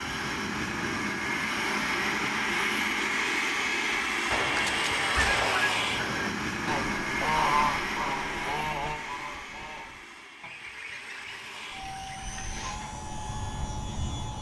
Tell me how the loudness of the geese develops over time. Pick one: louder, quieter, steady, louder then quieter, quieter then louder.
quieter.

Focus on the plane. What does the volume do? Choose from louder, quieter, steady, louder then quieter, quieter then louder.
quieter.